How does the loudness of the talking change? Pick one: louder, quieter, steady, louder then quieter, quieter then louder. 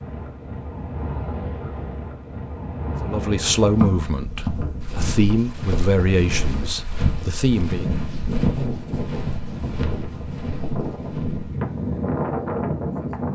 quieter then louder.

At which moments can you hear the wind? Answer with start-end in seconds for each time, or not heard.
0.0-13.2.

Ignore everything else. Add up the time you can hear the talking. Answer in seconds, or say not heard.
5 s.